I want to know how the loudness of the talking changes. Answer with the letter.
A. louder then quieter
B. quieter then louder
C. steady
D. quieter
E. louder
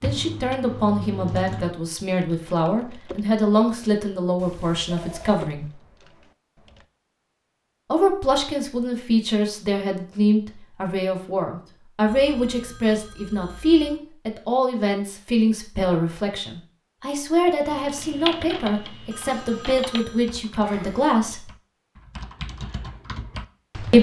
C.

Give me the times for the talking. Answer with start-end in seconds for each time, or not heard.
0.0-5.7, 7.9-21.5.